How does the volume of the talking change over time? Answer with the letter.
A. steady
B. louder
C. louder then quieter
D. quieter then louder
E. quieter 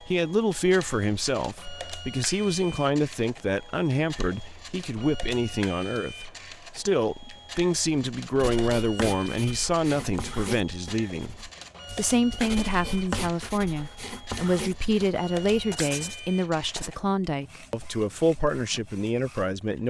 A.